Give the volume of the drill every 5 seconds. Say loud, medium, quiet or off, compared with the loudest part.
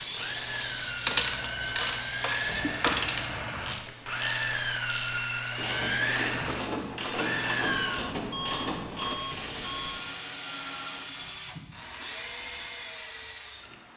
loud, loud, medium.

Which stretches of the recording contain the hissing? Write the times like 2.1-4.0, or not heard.
0.0-3.0.